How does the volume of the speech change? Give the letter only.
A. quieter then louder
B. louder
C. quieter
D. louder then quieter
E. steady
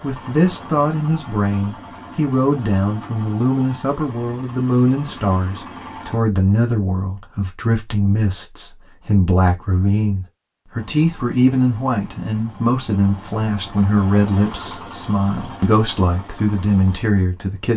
E.